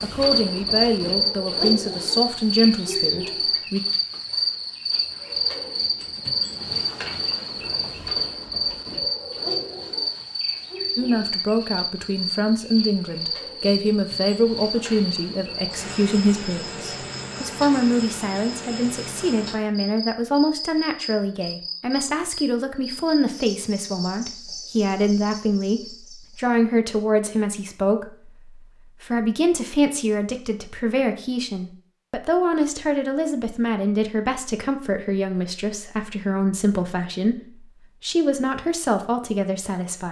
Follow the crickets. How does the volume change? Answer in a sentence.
The volume of the crickets goes down.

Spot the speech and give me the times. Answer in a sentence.
You can hear the speech from 0.0 to 3.8 s and from 10.9 to 40.0 s.